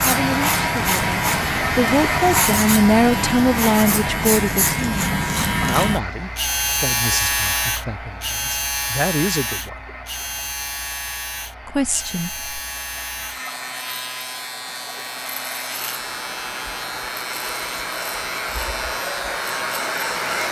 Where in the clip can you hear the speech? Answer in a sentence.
You can hear the speech from 0.0 to 9.8 s and from 11.7 to 12.4 s.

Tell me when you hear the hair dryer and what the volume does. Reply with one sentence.
You can hear the hair dryer from 0.0 to 20.4 s, getting quieter then louder.